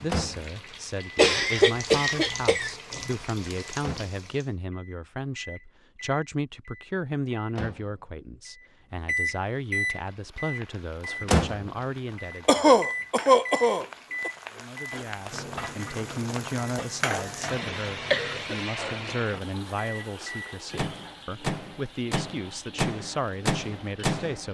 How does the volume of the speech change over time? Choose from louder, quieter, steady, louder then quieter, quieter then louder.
steady.